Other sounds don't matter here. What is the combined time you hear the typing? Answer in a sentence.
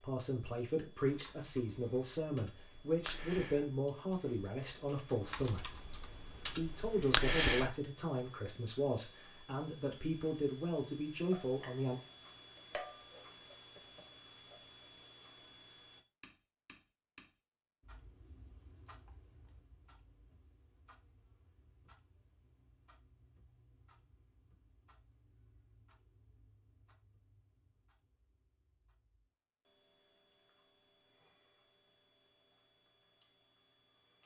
The typing can be heard for 7 seconds in total.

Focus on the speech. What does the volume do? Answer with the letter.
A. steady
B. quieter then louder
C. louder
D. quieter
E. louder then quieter
A.